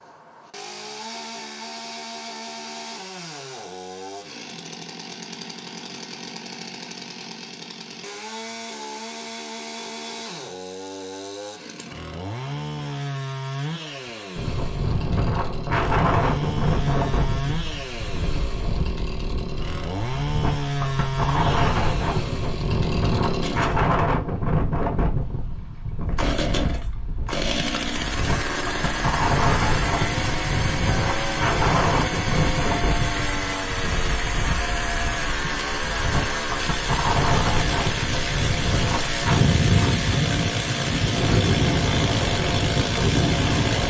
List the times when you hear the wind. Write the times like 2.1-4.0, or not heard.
14.3-43.8.